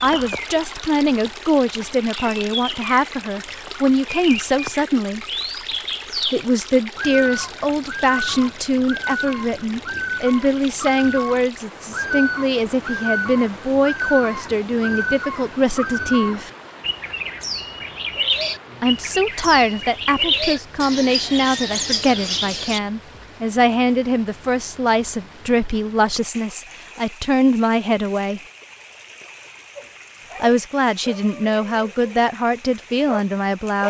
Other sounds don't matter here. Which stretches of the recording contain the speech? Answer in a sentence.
The speech can be heard from 0.0 to 5.2 s, from 6.3 to 16.5 s, from 18.8 to 28.4 s and from 30.4 to 33.8 s.